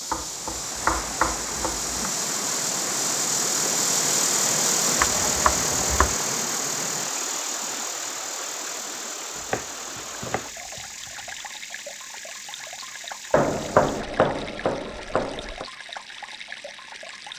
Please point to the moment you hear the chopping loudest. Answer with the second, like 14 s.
14 s.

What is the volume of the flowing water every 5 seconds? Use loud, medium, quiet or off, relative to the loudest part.
loud, loud, medium, medium.